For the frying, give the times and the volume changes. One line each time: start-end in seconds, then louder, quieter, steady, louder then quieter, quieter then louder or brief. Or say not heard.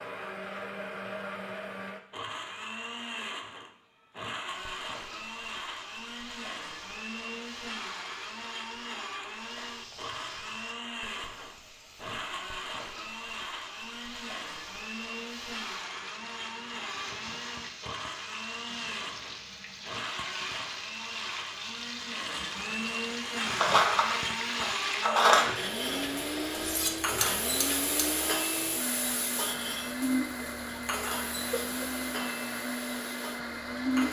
4.5-34.0 louder.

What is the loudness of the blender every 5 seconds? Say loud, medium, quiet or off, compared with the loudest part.
medium, medium, medium, medium, loud, loud, loud.